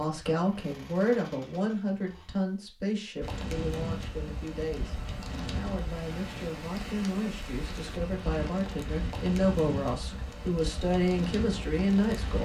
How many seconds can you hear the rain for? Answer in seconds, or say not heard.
9 s.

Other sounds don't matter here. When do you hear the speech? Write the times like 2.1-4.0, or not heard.
0.0-12.3.